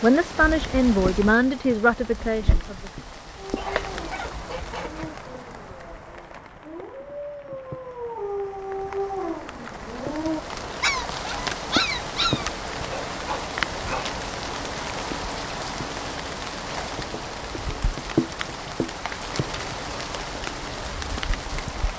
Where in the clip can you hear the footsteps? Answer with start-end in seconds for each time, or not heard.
not heard.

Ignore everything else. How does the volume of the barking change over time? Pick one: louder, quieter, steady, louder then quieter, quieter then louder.
louder.